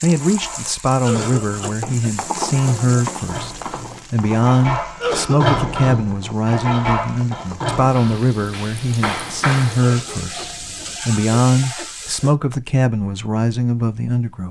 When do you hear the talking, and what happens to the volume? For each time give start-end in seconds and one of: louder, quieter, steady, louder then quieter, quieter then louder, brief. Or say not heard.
0.0-14.4 steady.